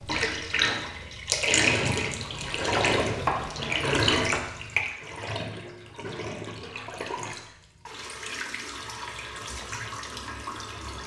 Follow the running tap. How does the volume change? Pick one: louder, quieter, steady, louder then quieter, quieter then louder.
quieter.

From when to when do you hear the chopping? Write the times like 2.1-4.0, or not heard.
2.3-4.5.